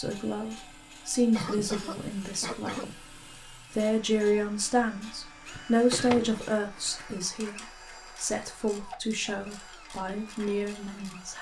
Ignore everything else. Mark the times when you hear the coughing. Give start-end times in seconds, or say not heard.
1.4-3.0, 5.9-7.0.